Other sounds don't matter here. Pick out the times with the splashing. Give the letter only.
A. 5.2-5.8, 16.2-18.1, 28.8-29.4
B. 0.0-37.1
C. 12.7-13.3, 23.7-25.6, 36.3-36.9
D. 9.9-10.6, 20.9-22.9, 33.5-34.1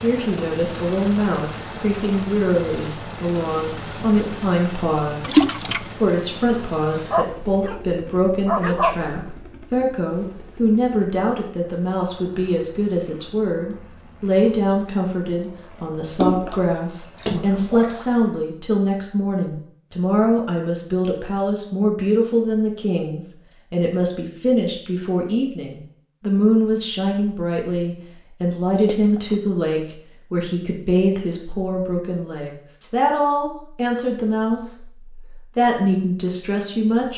A.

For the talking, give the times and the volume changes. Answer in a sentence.
The talking can be heard from 0.0 to 37.1 s, at a steady volume.